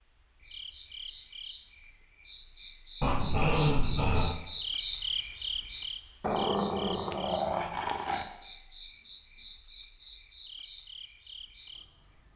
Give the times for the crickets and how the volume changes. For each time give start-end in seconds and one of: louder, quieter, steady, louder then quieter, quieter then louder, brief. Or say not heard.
0.0-12.3 louder then quieter.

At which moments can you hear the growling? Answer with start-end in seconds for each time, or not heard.
3.0-4.4, 6.2-8.2.